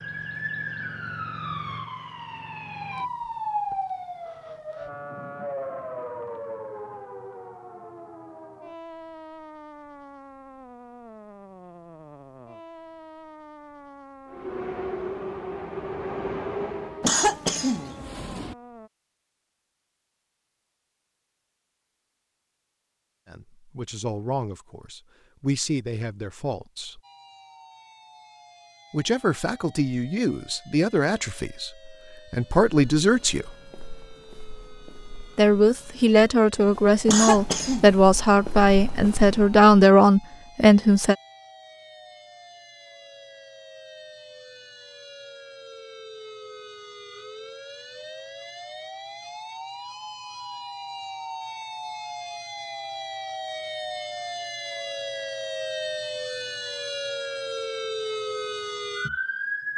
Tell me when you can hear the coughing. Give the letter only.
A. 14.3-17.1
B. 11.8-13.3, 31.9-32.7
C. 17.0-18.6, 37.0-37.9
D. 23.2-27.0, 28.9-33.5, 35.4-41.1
C.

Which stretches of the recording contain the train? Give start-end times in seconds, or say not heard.
14.3-17.1.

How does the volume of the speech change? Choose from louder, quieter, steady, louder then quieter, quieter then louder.
louder.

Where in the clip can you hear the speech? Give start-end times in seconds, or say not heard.
23.2-27.0, 28.9-33.5, 35.4-41.1.